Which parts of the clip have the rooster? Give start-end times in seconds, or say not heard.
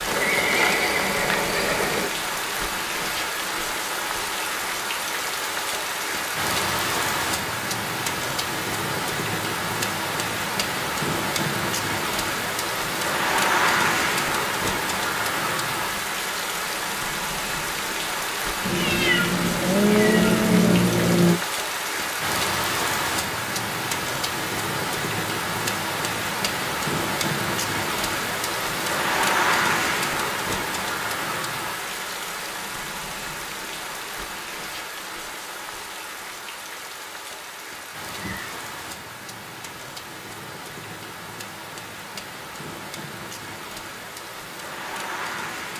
not heard.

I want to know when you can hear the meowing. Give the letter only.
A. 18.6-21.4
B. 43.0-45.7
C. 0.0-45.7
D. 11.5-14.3
A.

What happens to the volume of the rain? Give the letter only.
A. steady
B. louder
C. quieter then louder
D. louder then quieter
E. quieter
E.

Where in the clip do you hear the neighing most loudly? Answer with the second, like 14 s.
1 s.